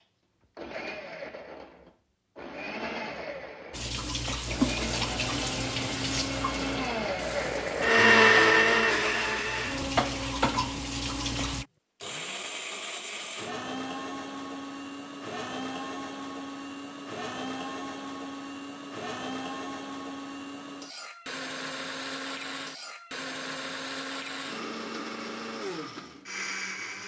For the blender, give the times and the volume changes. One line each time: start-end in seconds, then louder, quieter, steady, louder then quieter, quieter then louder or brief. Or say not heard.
0.0-27.0 louder then quieter.